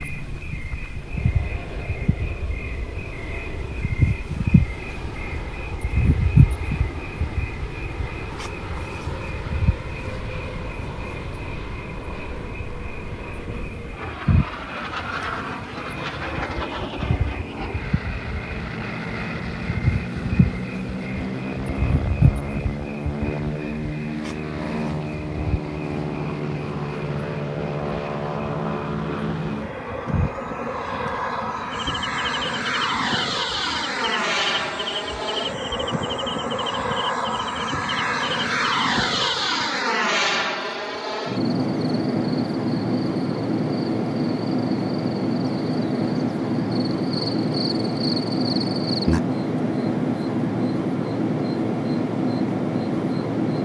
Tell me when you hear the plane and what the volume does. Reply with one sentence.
The plane can be heard from 0.0 to 53.6 s, getting louder.